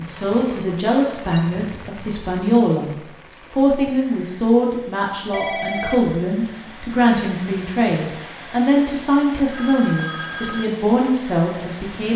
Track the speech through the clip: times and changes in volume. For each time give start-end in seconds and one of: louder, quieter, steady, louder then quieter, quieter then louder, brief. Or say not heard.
0.0-2.9 brief
3.5-12.1 steady.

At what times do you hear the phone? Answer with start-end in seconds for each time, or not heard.
0.1-1.4, 5.3-6.2, 9.3-10.7.